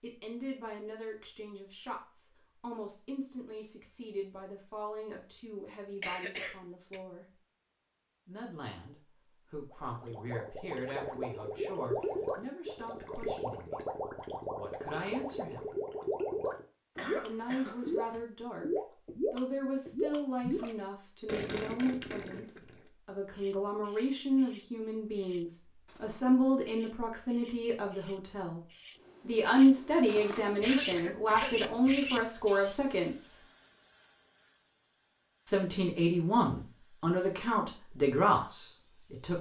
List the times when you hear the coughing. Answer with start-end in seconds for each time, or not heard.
6.0-7.0, 16.9-18.2, 30.6-31.8.